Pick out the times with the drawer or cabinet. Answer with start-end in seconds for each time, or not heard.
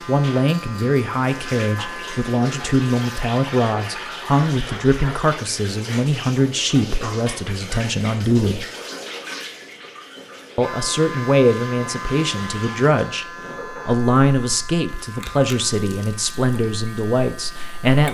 not heard.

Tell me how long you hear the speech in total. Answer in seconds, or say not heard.
16 s.